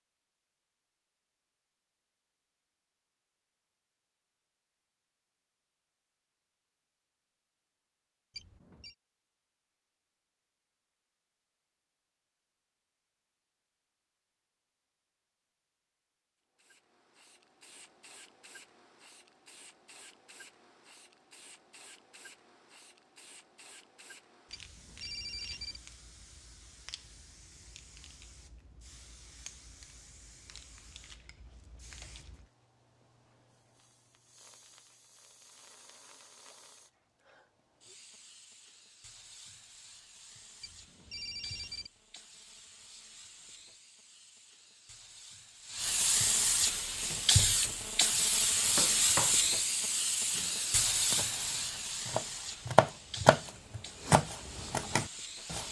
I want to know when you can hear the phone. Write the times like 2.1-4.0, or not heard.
8.3-8.9, 24.5-25.8, 40.6-41.9.